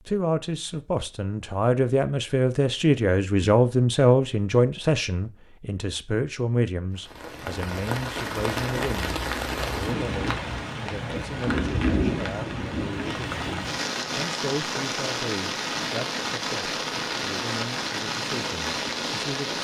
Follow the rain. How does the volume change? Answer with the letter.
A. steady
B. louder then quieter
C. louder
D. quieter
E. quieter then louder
A.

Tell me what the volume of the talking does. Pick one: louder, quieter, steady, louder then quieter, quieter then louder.
quieter.